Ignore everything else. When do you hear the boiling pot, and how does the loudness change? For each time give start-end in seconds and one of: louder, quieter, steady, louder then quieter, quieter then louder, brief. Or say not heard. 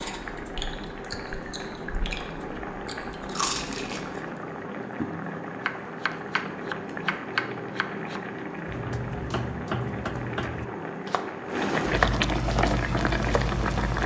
0.0-14.0 louder.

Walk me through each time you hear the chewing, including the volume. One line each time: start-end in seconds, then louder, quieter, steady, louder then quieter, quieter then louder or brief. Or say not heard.
0.0-4.2 quieter then louder.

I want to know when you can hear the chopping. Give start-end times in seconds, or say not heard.
5.7-13.6.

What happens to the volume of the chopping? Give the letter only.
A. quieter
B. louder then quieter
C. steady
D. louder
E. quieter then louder
E.